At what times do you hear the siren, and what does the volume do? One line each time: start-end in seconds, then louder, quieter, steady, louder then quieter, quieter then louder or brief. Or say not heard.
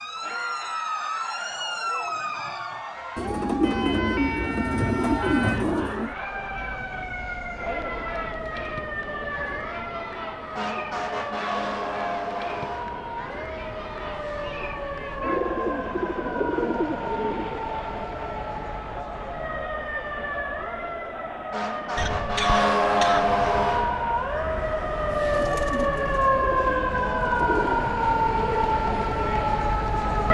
0.0-30.2 louder.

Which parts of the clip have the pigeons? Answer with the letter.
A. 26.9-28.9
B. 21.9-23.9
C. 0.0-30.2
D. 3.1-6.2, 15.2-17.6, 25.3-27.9
D.